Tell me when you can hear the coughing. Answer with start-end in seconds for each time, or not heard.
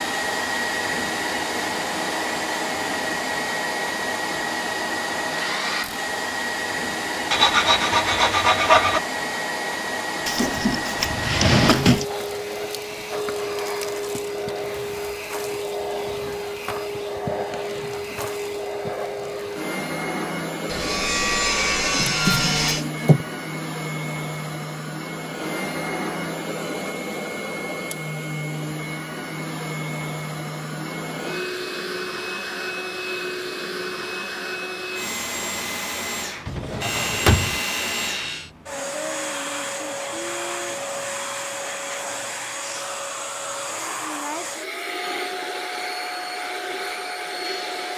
not heard.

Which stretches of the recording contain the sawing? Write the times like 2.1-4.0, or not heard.
7.3-9.0, 20.6-22.9, 36.8-38.5.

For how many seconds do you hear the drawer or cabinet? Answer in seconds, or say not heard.
4 s.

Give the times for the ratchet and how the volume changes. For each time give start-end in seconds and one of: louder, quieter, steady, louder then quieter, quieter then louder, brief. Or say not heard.
not heard.